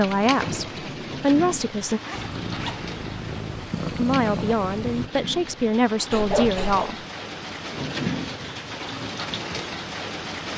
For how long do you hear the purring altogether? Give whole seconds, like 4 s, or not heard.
3 s.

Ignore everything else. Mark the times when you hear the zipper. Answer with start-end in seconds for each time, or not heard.
1.8-2.9, 6.1-7.0.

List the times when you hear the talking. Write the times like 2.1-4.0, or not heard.
0.0-2.0, 4.0-7.0.